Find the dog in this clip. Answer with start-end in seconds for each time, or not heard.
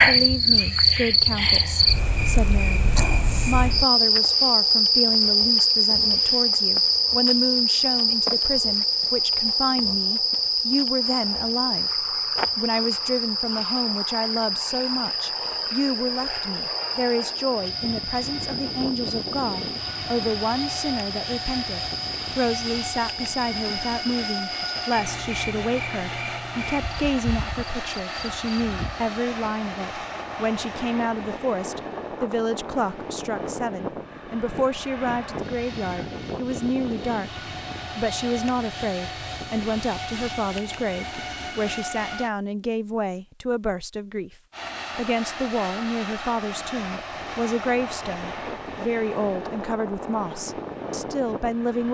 not heard.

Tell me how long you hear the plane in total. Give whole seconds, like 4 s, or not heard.
39 s.